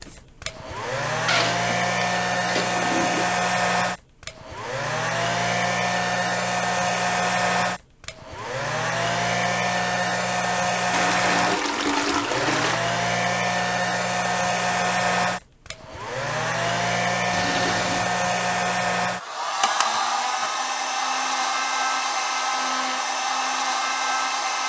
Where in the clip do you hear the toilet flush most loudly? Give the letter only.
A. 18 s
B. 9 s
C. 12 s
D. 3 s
C.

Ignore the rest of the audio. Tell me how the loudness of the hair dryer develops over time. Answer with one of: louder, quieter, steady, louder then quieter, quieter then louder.
steady.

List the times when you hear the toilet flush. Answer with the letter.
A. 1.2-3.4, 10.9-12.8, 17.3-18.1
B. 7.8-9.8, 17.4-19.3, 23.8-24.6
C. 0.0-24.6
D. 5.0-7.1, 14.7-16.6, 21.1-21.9
A.